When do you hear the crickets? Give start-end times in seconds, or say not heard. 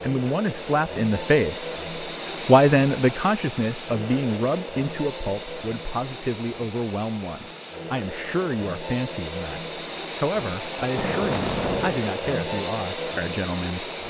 not heard.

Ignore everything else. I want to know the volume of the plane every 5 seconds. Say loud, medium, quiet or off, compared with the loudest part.
loud, medium, loud.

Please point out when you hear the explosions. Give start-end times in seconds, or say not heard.
10.8-12.0.